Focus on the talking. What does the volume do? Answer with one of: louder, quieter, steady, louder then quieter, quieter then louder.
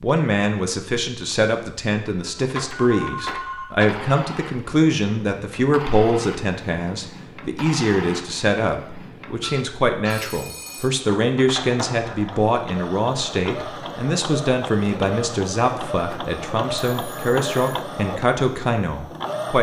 steady.